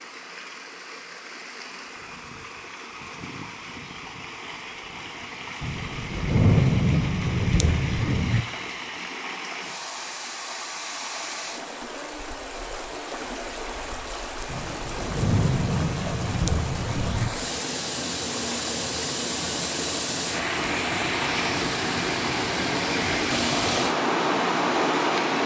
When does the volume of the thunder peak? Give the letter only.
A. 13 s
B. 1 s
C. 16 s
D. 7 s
D.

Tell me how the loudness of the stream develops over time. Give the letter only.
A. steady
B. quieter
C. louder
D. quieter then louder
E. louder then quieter
C.